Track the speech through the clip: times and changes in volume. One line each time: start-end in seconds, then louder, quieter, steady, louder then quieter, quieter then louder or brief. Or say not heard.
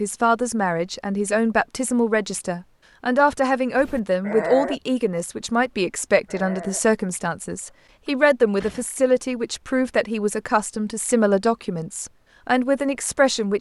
0.0-13.5 steady.